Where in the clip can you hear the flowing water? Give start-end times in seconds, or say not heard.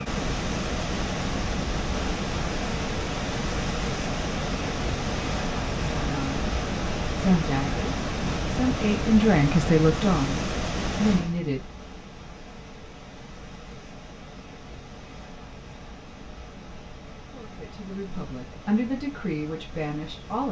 0.0-20.4.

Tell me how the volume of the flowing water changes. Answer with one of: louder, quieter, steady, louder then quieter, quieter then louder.
quieter.